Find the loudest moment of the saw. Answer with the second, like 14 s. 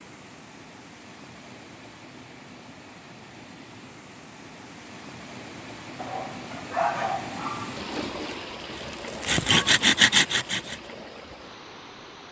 10 s.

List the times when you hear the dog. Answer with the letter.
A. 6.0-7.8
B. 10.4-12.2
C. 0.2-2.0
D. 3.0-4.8
A.